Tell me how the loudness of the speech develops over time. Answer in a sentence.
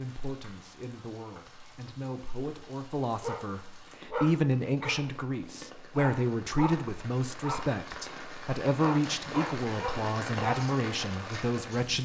The loudness of the speech goes up.